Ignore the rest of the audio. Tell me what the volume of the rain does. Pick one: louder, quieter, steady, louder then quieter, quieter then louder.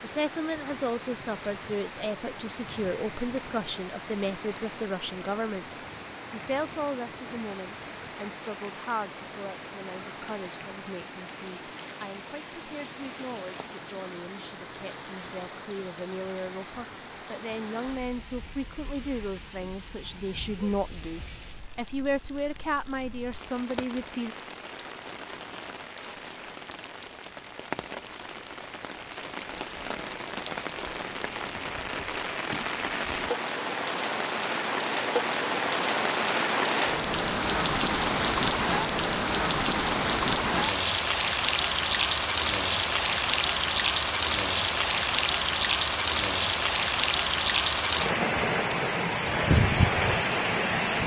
louder.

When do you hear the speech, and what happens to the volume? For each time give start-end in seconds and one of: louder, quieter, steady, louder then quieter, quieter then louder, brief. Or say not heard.
0.0-24.4 quieter then louder.